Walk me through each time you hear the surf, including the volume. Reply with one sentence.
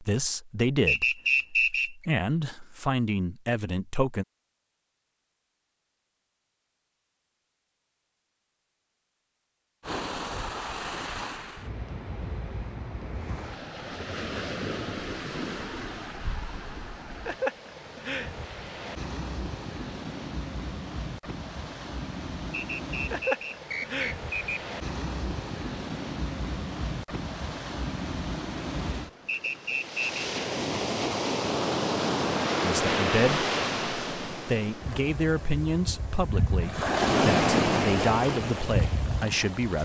The surf can be heard from 9.8 to 39.8 s, getting louder.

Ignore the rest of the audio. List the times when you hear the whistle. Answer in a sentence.
You can hear the whistle from 0.8 to 1.9 s, from 22.5 to 24.6 s and from 29.2 to 30.1 s.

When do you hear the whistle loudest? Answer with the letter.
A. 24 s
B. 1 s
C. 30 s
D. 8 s
B.